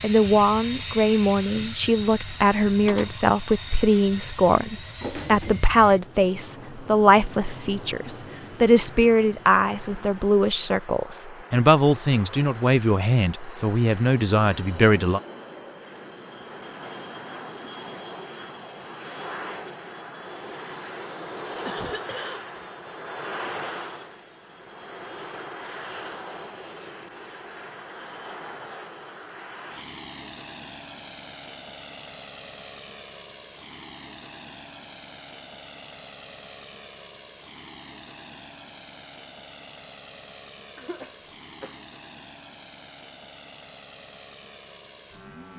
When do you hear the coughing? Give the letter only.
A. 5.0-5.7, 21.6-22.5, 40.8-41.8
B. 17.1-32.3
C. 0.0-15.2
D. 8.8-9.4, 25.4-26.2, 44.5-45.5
A.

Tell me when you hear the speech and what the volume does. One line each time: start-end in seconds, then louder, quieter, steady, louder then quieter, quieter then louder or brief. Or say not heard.
0.0-15.2 steady.